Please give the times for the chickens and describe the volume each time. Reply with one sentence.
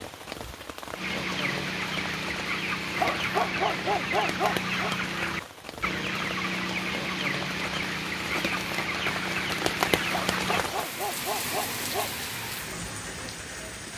The chickens can be heard from 0.9 to 10.7 s, at a steady volume.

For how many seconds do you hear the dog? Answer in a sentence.
You can hear the dog for 4 seconds altogether.